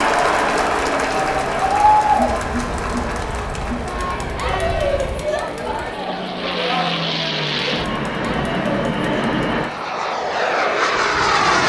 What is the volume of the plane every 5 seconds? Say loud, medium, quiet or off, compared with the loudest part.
quiet, medium, loud.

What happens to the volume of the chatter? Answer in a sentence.
The volume of the chatter goes down.